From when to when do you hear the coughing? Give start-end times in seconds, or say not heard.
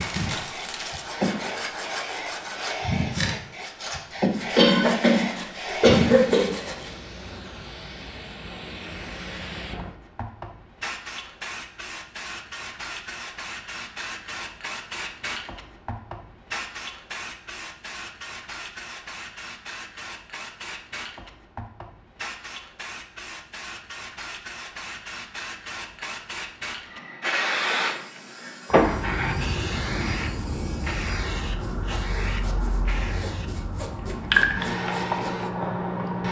4.5-6.5.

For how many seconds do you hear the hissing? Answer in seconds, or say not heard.
36 s.